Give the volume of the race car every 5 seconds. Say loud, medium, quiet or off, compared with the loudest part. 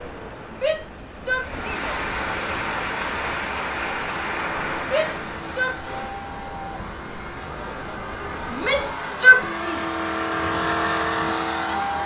off, medium, loud.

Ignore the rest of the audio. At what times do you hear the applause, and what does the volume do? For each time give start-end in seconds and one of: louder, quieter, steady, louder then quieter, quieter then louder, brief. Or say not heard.
1.3-6.2 quieter.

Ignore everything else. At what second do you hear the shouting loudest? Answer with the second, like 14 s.
9 s.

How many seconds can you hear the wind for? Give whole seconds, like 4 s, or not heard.
9 s.